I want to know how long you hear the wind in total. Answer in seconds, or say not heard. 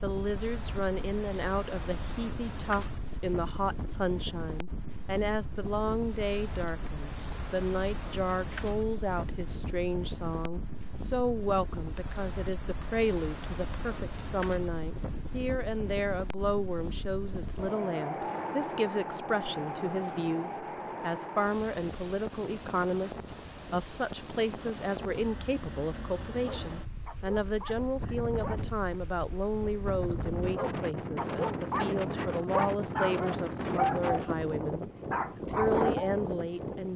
37 s.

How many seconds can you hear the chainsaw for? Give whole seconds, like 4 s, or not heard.
not heard.